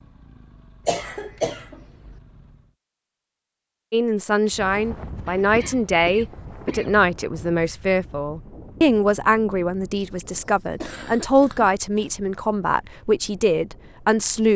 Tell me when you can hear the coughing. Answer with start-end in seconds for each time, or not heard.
0.8-2.1, 5.2-6.9, 10.6-12.2.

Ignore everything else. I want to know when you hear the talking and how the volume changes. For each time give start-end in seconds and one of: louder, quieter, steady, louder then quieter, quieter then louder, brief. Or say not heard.
3.9-14.5 steady.